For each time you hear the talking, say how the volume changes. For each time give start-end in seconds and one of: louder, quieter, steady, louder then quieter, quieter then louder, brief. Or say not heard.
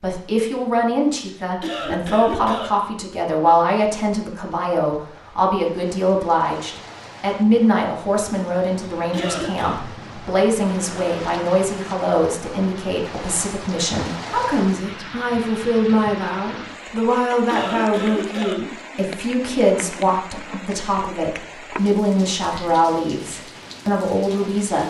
0.0-24.8 steady.